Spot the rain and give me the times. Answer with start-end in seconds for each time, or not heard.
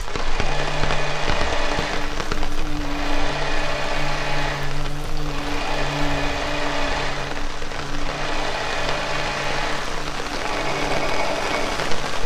0.0-12.2.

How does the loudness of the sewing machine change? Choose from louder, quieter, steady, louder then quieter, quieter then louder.
steady.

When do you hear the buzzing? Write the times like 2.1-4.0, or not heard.
0.1-12.2.